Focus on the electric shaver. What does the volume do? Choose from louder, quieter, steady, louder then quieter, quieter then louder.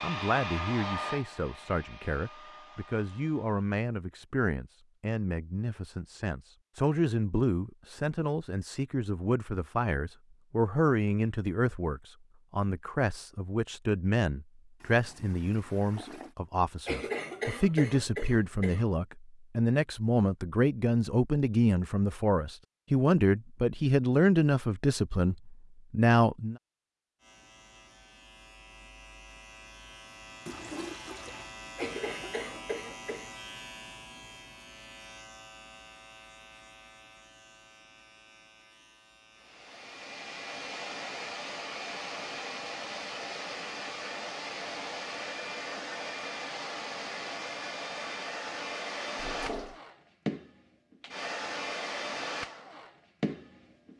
louder then quieter.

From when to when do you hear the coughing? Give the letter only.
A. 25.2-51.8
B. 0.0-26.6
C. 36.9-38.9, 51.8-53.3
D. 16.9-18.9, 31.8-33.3
D.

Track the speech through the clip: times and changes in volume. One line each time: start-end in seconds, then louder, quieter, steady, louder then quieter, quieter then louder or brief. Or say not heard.
0.0-26.6 louder.